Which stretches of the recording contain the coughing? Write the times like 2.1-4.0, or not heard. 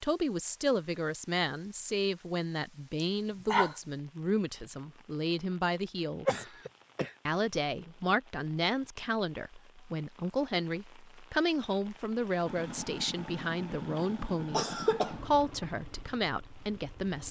3.0-3.8, 6.2-7.1, 14.5-15.2.